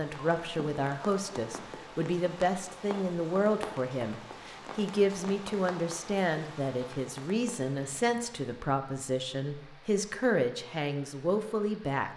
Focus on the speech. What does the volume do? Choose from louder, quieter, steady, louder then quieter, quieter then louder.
steady.